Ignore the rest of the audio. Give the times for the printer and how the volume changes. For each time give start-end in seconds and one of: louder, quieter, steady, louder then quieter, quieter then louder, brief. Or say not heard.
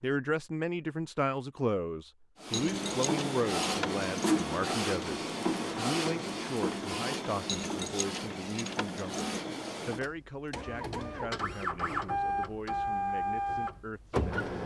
2.4-14.6 quieter then louder.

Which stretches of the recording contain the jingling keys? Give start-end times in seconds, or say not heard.
2.5-4.5, 7.5-9.4.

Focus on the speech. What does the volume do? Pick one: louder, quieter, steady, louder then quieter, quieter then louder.
quieter.